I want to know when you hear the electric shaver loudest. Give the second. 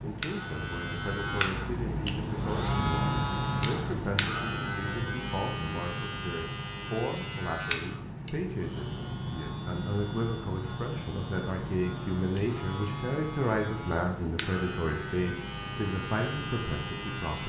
3 s.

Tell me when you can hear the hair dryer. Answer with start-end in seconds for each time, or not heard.
not heard.